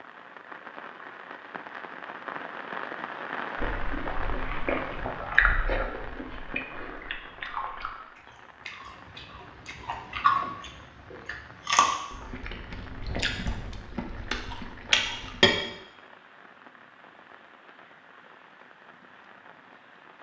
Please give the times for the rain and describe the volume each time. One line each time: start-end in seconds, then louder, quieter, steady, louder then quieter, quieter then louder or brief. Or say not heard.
0.0-20.1 quieter.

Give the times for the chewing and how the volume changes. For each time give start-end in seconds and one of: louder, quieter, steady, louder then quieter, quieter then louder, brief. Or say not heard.
3.6-15.6 quieter then louder.